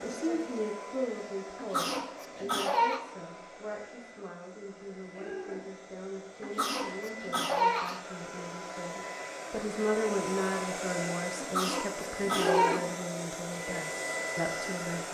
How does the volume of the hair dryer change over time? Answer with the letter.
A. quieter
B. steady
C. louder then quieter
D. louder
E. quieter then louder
D.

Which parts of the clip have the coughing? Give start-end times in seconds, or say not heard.
1.6-3.0, 6.4-8.0, 11.4-12.8.